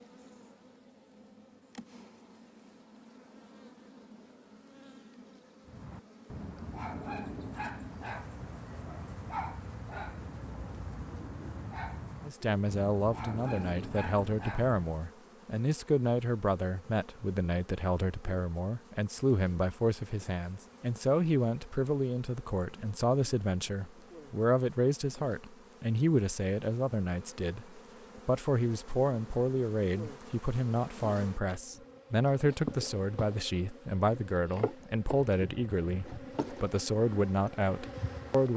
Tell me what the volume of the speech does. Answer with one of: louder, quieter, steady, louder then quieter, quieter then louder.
steady.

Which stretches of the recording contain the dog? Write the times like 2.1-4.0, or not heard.
5.7-15.1.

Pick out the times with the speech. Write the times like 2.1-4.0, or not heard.
12.2-38.5.